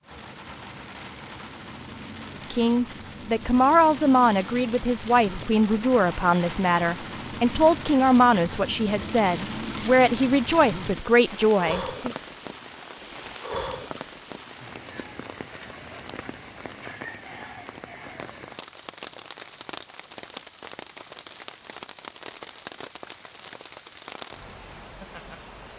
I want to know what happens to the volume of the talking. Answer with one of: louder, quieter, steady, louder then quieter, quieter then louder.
steady.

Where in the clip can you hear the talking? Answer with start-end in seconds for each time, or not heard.
2.4-12.2.